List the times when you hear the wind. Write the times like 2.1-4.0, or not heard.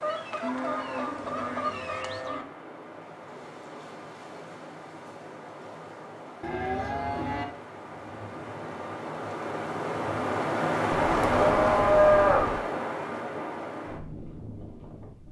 0.0-15.2.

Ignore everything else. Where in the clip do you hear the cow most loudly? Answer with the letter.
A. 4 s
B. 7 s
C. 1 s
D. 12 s
D.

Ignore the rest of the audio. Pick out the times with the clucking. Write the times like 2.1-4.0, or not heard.
0.0-2.4.